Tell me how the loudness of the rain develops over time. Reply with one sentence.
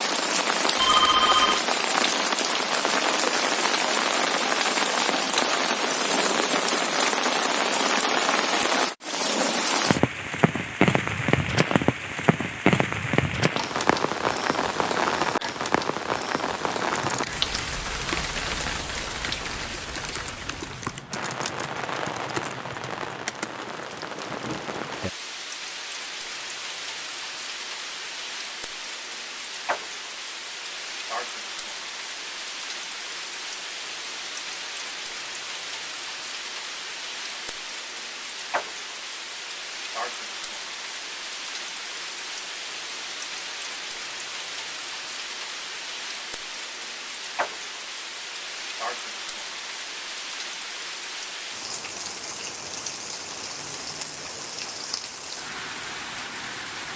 The loudness of the rain goes down.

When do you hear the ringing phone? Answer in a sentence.
The ringing phone can be heard from 0.8 to 1.6 s.